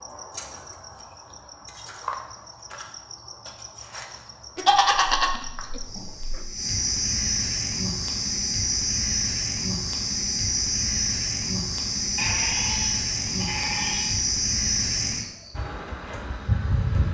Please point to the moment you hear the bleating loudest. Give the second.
5 s.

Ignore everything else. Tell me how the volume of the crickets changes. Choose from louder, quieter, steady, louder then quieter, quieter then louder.
louder.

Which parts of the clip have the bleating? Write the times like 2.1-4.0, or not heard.
4.5-6.5, 12.2-14.2.